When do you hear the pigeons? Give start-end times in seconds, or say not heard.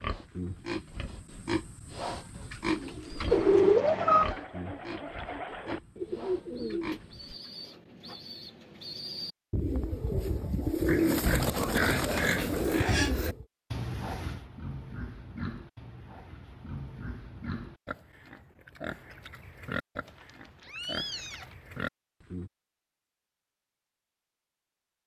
2.5-13.4.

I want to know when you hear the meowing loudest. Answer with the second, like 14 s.
4 s.